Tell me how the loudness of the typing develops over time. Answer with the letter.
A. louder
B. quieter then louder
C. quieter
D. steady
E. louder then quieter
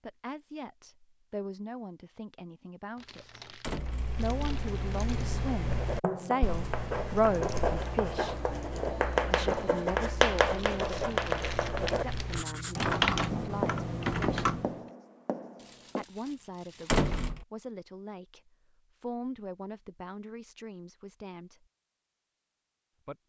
B.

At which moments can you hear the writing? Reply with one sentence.
You can hear the writing from 5.7 to 16.1 s.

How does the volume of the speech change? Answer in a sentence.
The volume of the speech goes up, then down.